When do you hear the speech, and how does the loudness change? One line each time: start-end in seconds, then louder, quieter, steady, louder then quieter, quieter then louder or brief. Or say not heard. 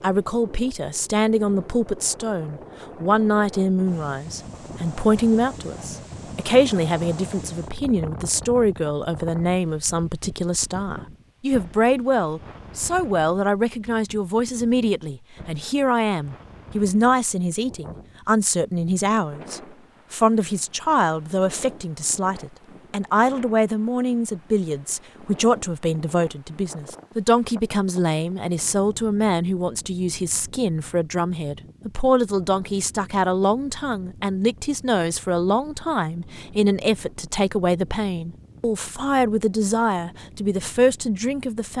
0.0-41.7 steady.